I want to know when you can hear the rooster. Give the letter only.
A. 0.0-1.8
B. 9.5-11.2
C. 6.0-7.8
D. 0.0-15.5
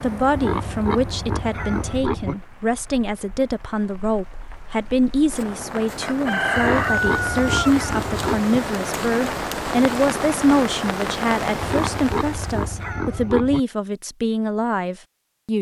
C.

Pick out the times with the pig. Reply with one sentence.
The pig can be heard from 0.3 to 2.4 s, from 6.5 to 8.4 s and from 11.6 to 13.6 s.